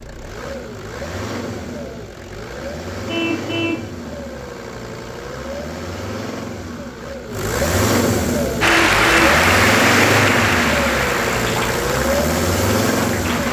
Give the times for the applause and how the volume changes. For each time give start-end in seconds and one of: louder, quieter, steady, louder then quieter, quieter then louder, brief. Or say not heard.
8.6-13.4 quieter.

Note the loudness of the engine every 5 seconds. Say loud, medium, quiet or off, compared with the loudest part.
medium, loud, loud.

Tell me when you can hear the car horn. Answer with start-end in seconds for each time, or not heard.
3.0-3.9, 8.6-9.3.